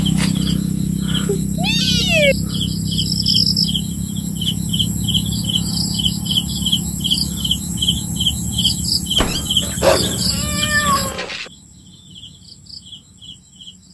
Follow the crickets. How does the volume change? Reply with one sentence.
The loudness of the crickets goes down.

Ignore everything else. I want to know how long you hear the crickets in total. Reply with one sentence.
You can hear the crickets for 14 seconds altogether.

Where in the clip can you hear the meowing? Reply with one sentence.
The meowing can be heard from 1.2 to 2.4 s and from 9.2 to 11.5 s.